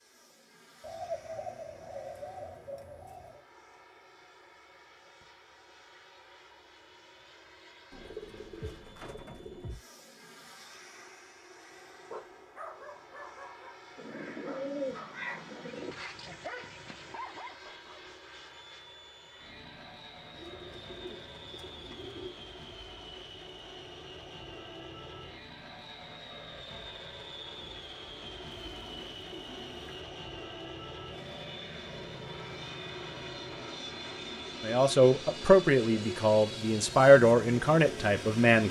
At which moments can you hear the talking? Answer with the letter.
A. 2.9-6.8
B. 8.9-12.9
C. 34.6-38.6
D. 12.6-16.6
C.